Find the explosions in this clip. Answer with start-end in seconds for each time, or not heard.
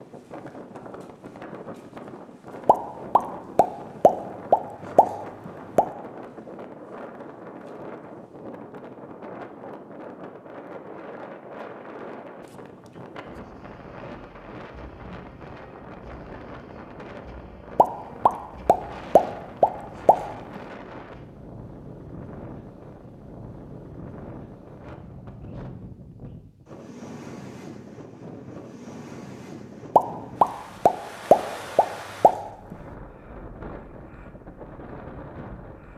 2.6-5.8, 17.8-20.6, 29.9-32.8.